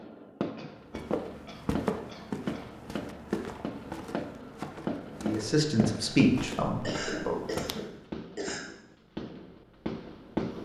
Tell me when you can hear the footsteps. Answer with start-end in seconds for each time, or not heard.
0.9-7.9.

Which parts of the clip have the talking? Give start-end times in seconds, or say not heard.
5.2-7.4.